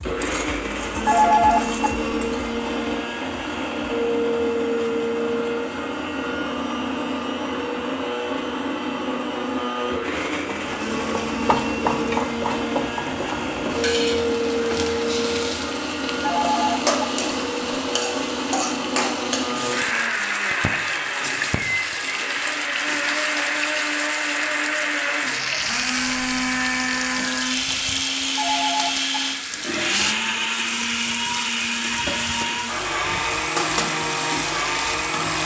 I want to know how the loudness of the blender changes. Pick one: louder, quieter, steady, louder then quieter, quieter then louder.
steady.